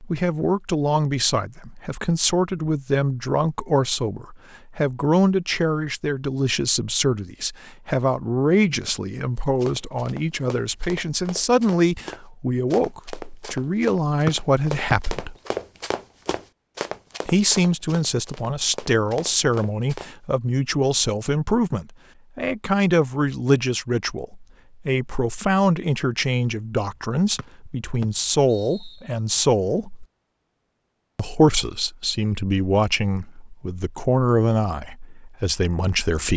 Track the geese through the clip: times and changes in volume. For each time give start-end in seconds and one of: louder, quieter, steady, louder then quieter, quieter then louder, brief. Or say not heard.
not heard.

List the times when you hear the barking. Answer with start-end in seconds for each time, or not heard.
not heard.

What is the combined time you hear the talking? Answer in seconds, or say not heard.
33 s.